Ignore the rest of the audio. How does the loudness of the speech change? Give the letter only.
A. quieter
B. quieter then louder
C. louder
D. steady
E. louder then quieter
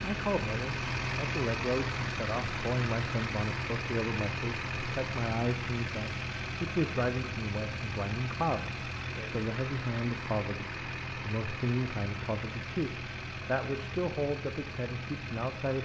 D.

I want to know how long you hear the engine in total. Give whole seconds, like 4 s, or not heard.
16 s.